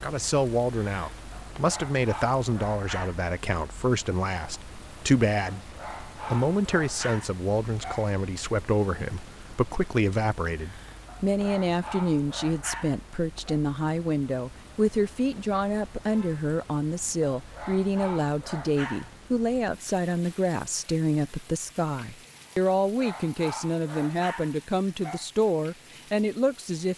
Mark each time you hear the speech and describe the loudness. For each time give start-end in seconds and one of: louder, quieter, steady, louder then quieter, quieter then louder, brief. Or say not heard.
0.0-26.9 steady.